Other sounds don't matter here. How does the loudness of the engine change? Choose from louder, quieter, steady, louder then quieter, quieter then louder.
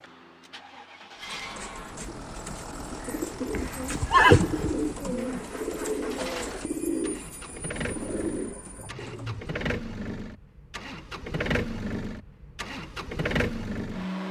louder.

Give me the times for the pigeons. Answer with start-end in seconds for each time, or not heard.
1.3-9.5.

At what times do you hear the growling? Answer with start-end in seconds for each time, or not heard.
8.8-9.4.